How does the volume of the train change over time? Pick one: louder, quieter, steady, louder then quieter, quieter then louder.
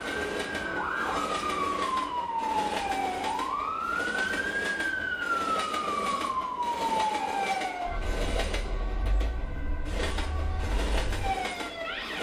steady.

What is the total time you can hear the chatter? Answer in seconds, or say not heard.
not heard.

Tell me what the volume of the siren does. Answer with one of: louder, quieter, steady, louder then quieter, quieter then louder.
quieter.